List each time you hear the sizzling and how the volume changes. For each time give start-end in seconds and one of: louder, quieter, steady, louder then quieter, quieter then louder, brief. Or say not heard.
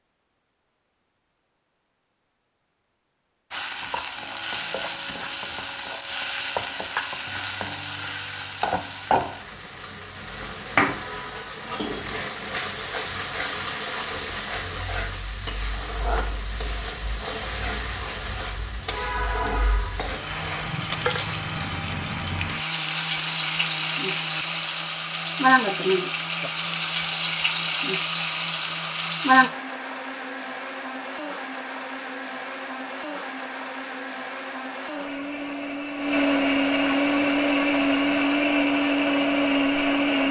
3.5-29.5 louder.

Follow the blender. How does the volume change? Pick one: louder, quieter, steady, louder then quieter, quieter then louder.
louder.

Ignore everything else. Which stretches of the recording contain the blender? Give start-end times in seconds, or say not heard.
20.1-40.2.